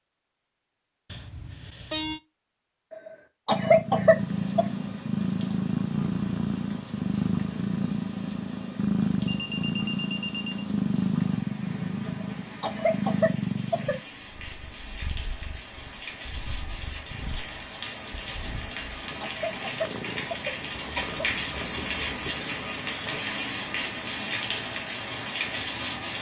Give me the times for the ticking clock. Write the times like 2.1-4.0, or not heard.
not heard.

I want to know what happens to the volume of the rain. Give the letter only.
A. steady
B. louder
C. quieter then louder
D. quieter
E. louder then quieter
B.